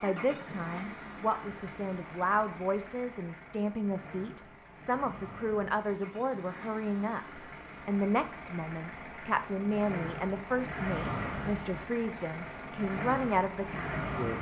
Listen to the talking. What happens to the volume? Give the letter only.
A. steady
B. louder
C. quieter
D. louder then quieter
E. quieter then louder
A.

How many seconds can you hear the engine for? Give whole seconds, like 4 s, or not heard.
14 s.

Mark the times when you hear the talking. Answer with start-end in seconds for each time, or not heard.
0.0-14.3.